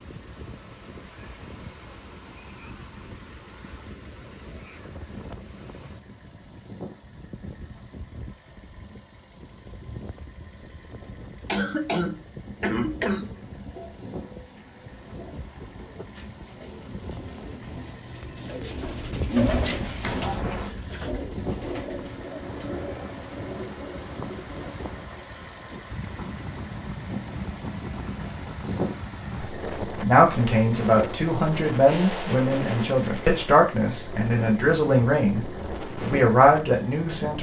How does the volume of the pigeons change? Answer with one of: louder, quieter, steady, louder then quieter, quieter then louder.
louder then quieter.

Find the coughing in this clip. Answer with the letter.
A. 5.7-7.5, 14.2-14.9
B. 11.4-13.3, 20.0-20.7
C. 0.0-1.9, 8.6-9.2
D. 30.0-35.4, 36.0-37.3
B.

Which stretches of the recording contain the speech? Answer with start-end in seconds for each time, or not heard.
30.0-35.4, 36.0-37.3.